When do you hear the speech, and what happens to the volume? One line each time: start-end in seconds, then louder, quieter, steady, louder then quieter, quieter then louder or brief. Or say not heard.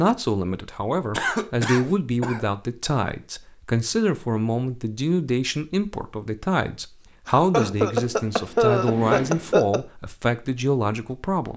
0.0-11.5 steady.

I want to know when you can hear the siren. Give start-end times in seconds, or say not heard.
not heard.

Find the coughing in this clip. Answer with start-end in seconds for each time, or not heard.
1.1-2.4, 7.2-9.8.